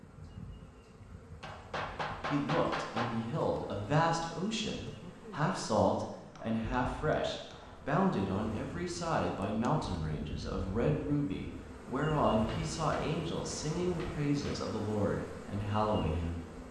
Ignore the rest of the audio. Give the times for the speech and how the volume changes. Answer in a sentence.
You can hear the speech from 1.9 to 16.6 s, at a steady volume.